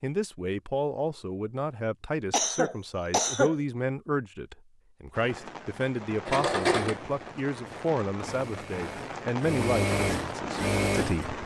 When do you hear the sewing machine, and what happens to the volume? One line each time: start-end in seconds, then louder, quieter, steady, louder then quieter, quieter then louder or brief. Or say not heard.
6.2-11.4 quieter then louder.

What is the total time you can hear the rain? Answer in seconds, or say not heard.
6 s.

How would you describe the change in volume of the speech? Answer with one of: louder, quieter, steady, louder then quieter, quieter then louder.
steady.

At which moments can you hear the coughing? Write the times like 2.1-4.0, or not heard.
2.3-3.5.